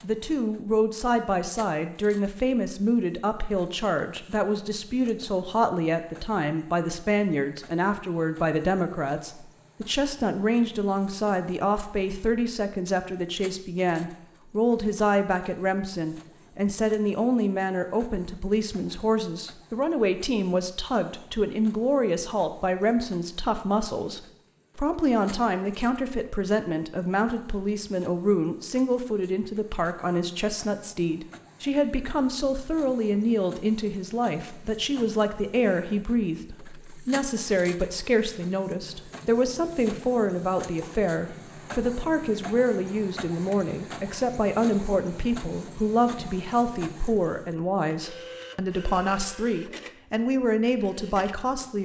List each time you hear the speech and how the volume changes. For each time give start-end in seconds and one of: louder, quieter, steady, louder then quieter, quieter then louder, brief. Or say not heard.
0.0-51.7 steady.